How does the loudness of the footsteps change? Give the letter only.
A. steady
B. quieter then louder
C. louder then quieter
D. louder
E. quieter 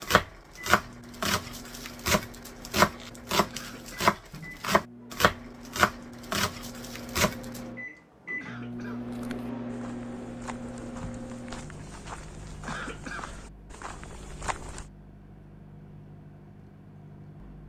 D.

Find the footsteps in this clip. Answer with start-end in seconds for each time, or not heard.
8.9-14.9.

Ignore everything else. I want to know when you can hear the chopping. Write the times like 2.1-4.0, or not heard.
0.0-7.6.